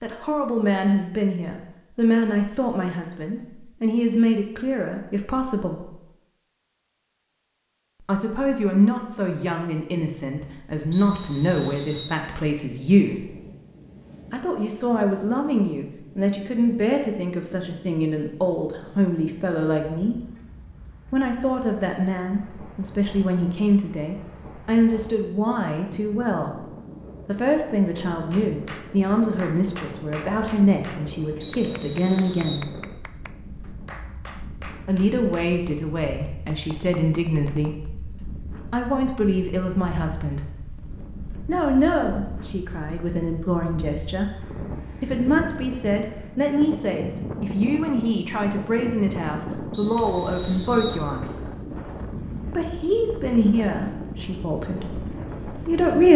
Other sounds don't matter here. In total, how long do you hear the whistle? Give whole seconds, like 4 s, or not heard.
4 s.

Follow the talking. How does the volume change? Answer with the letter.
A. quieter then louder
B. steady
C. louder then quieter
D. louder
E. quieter
B.